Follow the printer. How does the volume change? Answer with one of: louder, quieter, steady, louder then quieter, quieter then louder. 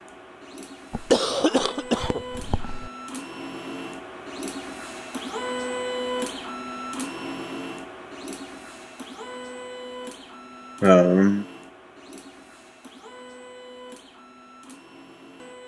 louder then quieter.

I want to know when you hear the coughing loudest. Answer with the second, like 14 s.
11 s.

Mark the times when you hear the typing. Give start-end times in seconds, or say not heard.
not heard.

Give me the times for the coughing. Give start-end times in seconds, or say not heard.
0.9-2.9, 10.8-11.4.